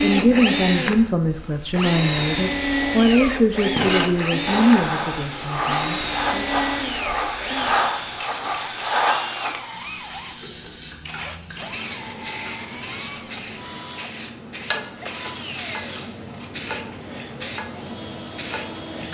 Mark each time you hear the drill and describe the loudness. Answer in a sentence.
You can hear the drill from 0.0 to 19.0 s, getting quieter.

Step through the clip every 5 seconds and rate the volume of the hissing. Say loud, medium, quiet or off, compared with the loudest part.
loud, loud, medium, medium.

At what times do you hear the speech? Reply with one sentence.
The speech can be heard from 0.0 to 6.5 s.